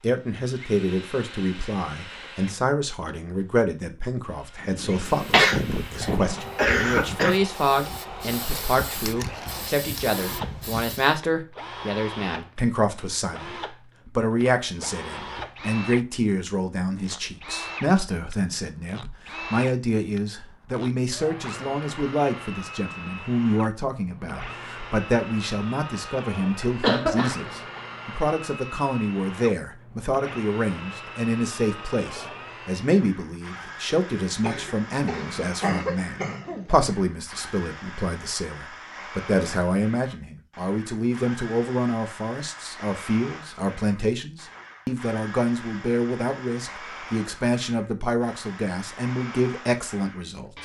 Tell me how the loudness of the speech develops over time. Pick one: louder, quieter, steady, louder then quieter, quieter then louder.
steady.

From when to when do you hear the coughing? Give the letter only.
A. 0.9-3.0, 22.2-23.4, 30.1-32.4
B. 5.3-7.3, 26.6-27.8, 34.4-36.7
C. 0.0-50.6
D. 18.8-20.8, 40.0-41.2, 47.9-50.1
B.